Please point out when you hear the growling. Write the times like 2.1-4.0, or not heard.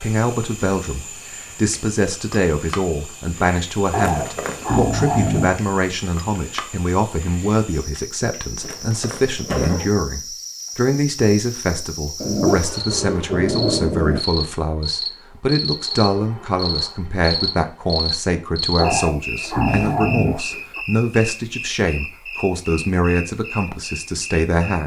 3.9-5.5, 12.2-14.2, 18.8-20.8.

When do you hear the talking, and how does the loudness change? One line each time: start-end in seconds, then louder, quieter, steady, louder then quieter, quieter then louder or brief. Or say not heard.
0.0-24.8 steady.